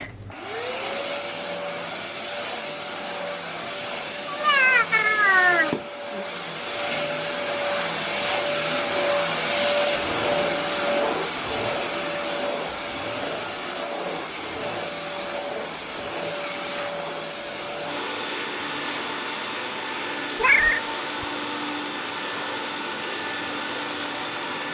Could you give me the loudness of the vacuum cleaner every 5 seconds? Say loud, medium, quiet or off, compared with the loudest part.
medium, loud, loud, medium, medium.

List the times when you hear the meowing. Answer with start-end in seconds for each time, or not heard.
4.2-6.2, 20.4-21.2.